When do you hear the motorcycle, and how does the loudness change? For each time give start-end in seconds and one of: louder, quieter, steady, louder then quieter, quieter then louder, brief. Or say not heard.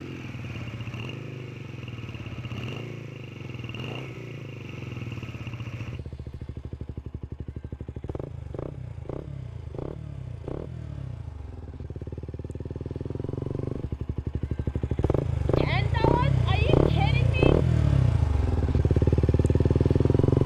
0.0-20.4 louder.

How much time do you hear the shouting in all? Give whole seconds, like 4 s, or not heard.
2 s.